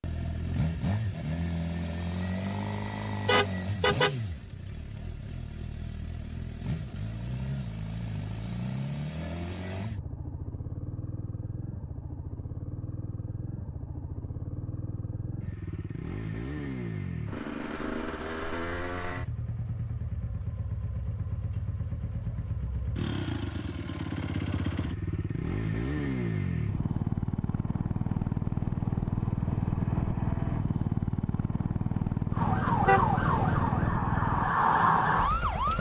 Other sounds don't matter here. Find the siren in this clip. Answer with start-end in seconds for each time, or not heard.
32.3-35.7.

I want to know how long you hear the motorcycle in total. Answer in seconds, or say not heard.
36 s.